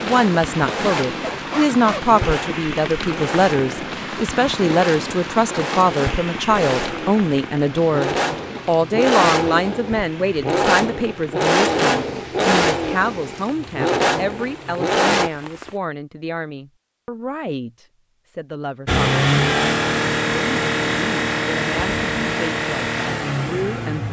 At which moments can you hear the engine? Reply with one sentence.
You can hear the engine from 0.0 to 15.3 s and from 18.9 to 24.0 s.